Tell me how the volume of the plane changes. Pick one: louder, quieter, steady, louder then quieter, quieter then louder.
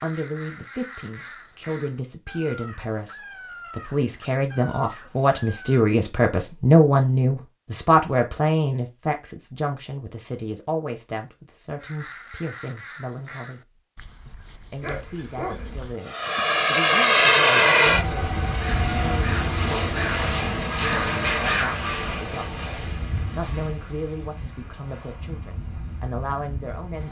quieter.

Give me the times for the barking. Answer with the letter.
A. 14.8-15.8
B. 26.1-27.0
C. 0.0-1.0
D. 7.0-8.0
A.